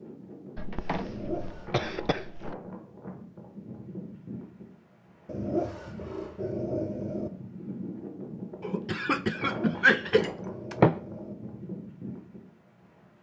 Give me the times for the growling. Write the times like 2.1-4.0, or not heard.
1.0-2.2, 5.2-7.3, 9.4-11.3.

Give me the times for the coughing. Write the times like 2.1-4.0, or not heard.
0.6-2.5, 8.6-11.0.